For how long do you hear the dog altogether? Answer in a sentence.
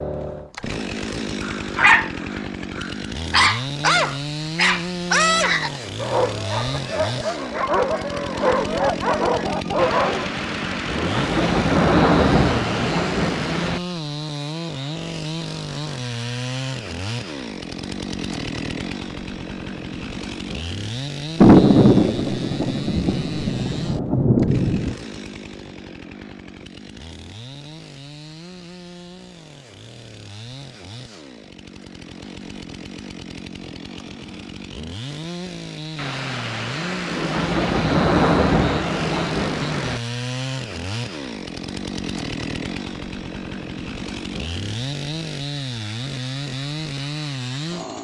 The dog can be heard for 9 seconds in total.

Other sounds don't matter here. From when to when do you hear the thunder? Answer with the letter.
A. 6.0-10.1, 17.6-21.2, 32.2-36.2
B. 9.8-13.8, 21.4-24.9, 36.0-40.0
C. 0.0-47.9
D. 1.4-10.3
B.